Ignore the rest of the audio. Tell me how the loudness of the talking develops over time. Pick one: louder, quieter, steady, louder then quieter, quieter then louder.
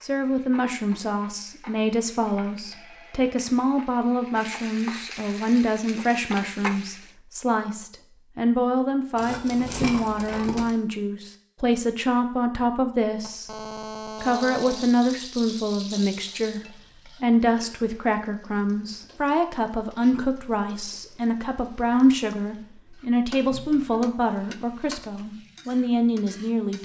steady.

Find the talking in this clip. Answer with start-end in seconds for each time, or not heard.
0.0-13.5, 14.2-26.8.